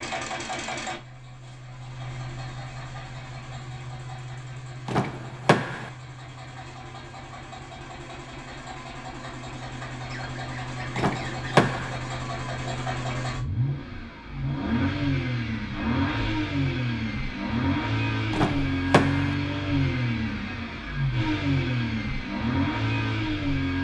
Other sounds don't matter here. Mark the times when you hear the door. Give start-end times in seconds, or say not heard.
4.8-5.9, 10.9-12.0, 18.3-19.4.